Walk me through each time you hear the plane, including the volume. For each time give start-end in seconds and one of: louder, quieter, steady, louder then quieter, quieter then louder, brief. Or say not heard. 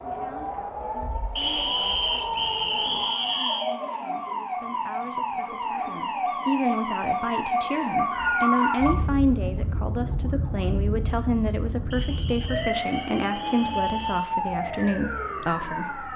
not heard.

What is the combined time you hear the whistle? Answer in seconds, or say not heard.
6 s.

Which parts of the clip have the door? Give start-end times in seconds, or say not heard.
not heard.